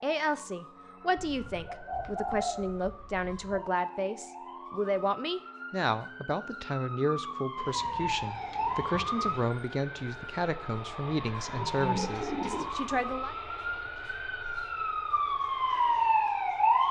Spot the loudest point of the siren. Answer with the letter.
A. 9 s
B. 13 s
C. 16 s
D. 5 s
C.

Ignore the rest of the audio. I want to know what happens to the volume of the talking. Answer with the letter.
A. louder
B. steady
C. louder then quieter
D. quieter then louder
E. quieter
B.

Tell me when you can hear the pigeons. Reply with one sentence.
The pigeons can be heard from 1.1 to 3.6 s, from 7.5 to 9.5 s and from 11.5 to 12.7 s.